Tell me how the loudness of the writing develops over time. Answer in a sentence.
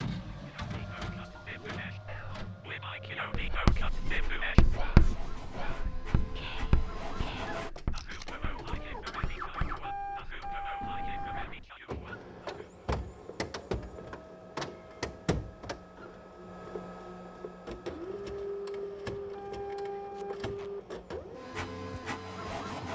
The loudness of the writing goes down.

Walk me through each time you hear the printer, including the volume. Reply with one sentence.
The printer can be heard from 0.0 to 22.8 s, getting louder.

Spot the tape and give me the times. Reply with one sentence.
The tape can be heard from 7.9 to 8.3 s and from 20.1 to 20.7 s.